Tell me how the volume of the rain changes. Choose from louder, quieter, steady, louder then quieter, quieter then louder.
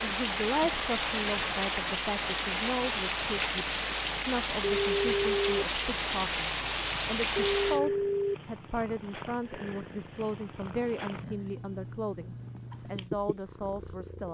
steady.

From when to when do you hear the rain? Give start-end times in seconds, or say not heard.
0.0-7.8.